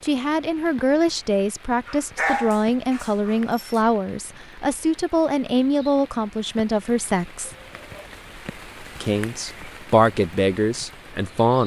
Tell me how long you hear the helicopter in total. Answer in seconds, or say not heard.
not heard.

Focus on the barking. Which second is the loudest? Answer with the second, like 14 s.
2 s.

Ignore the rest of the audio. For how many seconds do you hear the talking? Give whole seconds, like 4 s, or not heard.
10 s.